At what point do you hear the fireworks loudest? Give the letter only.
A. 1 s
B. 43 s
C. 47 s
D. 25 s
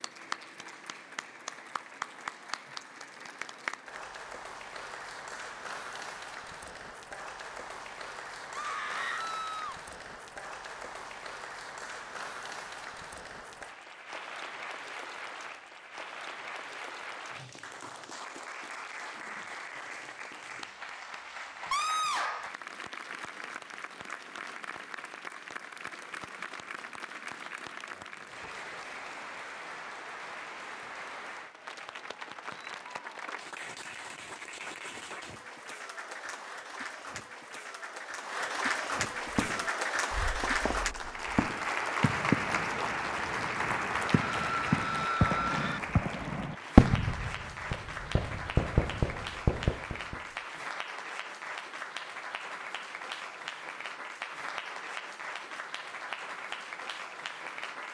C.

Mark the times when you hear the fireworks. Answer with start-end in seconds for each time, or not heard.
39.3-50.1.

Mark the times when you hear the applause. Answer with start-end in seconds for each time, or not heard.
0.0-57.9.